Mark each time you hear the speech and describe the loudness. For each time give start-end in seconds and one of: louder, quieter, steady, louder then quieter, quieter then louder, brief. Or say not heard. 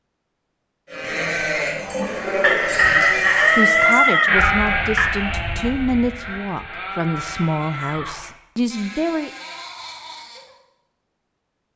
2.9-9.3 steady.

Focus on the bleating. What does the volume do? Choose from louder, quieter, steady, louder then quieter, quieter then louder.
quieter.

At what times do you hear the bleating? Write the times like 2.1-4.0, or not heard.
0.8-10.6.